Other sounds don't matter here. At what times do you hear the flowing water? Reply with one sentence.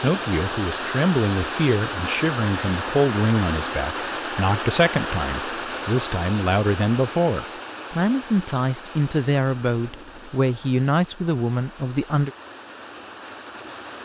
You can hear the flowing water from 0.0 to 13.9 s.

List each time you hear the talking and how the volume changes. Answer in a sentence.
You can hear the talking from 0.0 to 12.3 s, at a steady volume.